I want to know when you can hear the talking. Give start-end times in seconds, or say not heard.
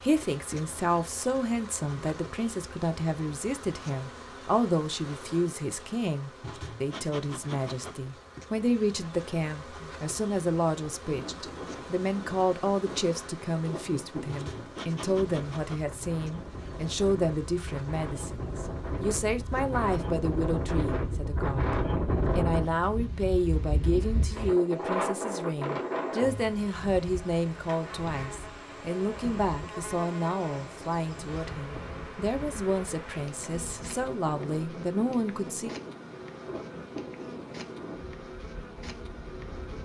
0.0-35.7.